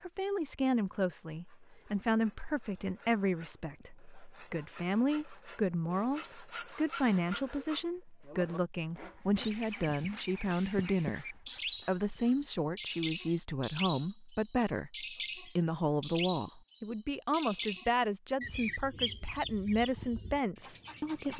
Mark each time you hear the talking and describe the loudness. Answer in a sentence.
You can hear the talking from 0.0 to 21.3 s, at a steady volume.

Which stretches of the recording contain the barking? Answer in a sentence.
You can't hear the barking here.